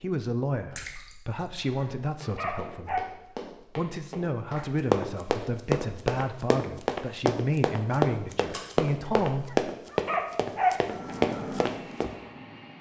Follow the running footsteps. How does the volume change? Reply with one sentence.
The volume of the running footsteps goes up.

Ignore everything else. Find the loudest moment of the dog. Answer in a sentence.
The volume of the dog peaks at 11 seconds.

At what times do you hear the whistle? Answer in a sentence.
The whistle can't be heard in this clip.